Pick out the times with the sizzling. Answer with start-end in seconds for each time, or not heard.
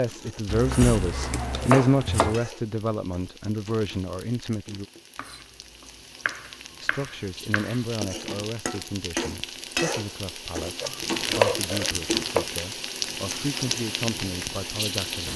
0.0-15.3.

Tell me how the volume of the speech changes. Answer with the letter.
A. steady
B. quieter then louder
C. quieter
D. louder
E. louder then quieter
C.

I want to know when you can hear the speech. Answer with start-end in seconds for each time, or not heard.
0.0-4.8, 6.8-15.3.